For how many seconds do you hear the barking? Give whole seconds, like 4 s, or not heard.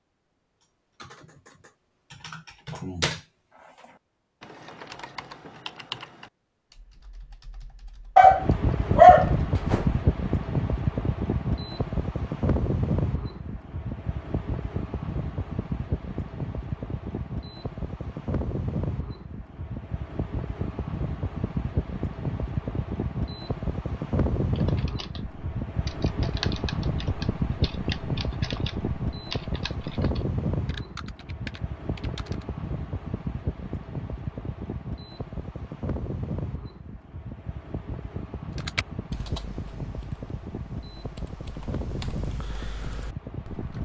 2 s.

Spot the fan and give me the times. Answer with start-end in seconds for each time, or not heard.
8.2-43.7.